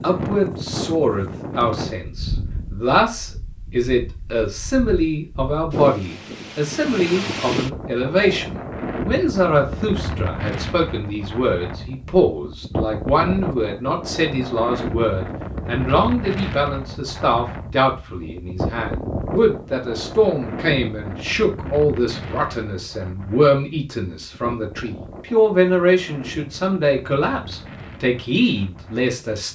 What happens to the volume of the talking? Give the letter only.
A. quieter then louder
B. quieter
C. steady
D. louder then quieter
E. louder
C.